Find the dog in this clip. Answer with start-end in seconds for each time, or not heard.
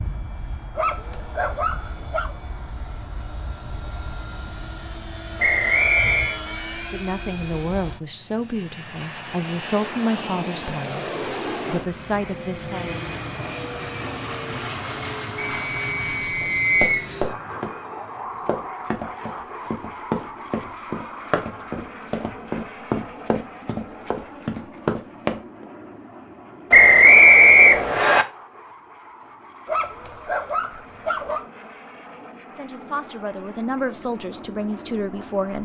0.8-2.4, 29.6-31.4.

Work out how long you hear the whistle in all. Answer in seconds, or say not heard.
4 s.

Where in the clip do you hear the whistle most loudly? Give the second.
27 s.